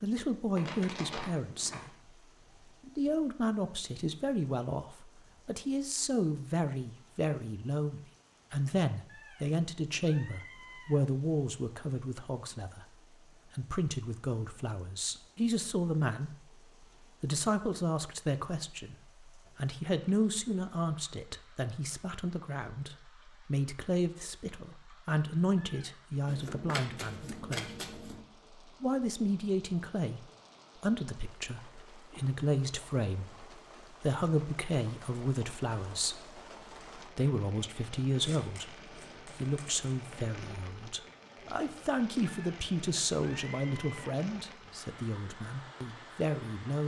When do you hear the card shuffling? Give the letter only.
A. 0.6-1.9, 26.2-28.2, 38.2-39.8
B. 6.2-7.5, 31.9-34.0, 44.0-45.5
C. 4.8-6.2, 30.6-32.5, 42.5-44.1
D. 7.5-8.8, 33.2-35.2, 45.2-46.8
A.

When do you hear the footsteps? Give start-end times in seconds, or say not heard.
not heard.